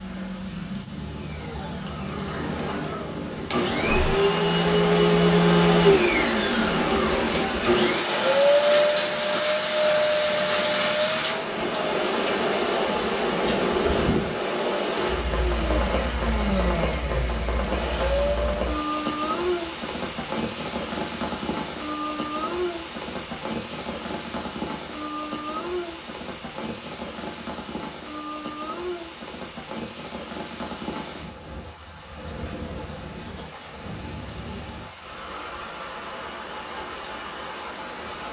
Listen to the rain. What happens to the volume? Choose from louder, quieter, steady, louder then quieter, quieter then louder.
louder then quieter.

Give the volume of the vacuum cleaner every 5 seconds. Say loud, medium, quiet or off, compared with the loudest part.
medium, loud, medium, medium, off, off, off, off.